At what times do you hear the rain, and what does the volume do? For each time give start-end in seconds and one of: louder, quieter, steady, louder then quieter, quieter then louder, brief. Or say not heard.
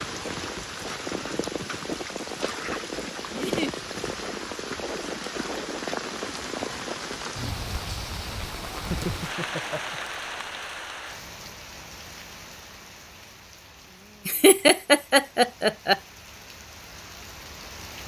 0.0-18.0 quieter.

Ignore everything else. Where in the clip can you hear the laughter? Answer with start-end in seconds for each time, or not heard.
3.3-3.7, 8.8-10.1, 14.2-16.0.